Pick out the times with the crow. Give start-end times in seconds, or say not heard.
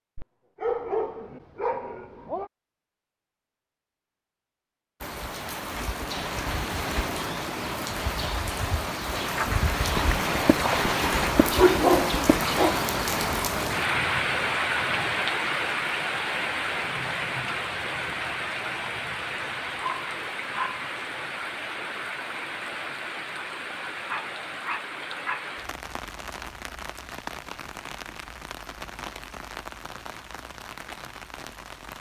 not heard.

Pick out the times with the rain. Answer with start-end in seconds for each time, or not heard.
5.0-31.9.